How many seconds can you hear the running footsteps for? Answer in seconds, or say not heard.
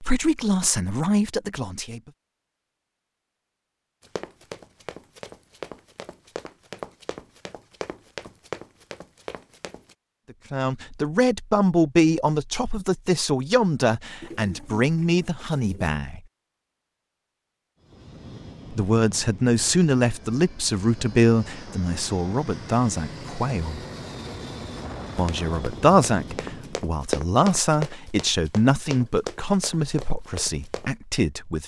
12 s.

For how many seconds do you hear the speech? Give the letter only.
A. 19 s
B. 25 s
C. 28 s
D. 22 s
A.